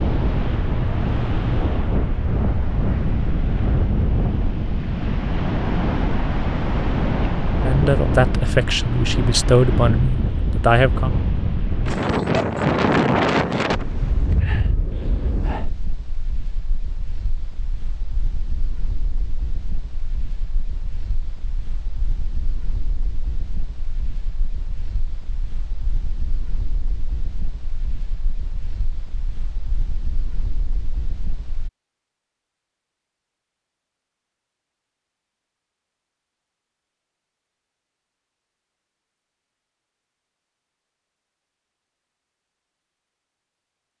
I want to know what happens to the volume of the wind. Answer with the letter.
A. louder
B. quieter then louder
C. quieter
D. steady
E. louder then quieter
C.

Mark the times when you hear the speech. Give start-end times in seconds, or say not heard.
7.6-11.1.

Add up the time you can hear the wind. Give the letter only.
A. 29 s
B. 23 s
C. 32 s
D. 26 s
C.